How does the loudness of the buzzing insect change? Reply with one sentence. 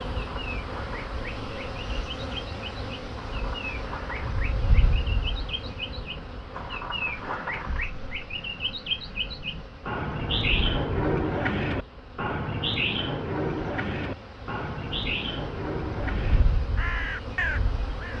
The volume of the buzzing insect goes down, then up.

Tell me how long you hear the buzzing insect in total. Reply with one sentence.
You can hear the buzzing insect for 18 seconds altogether.